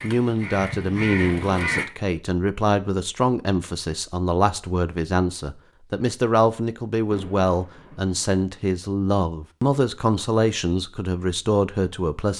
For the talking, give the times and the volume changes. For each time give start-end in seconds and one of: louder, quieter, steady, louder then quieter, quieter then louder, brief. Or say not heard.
0.0-12.3 steady.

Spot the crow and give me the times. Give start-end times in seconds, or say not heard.
0.0-1.9.